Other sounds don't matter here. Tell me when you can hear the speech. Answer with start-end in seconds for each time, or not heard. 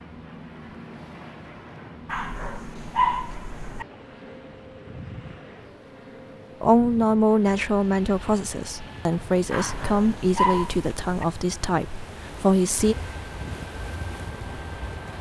6.6-12.9.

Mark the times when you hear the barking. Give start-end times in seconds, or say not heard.
2.0-3.9, 9.5-11.2.